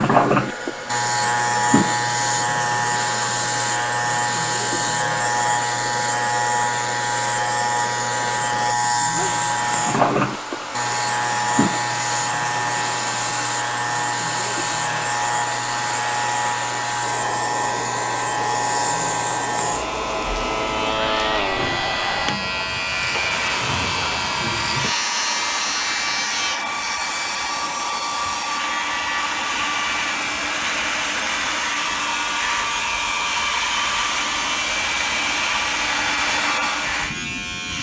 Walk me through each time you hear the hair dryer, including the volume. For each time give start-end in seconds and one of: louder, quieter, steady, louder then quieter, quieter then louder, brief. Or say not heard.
0.0-37.7 louder.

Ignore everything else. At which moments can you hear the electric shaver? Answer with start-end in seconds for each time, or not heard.
0.0-37.7.